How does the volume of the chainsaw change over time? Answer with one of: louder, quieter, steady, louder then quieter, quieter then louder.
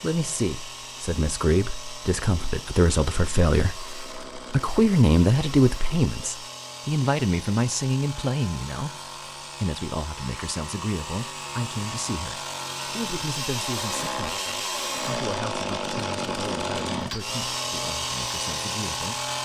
louder.